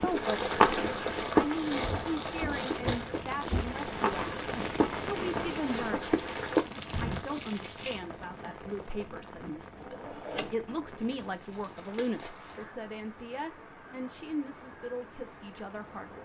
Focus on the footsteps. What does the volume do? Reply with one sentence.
The volume of the footsteps goes down, then up.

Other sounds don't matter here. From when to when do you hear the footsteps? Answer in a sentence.
You can hear the footsteps from 0.0 to 7.2 s.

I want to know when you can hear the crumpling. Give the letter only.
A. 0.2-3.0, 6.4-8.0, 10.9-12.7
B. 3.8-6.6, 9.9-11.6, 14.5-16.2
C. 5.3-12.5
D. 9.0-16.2
A.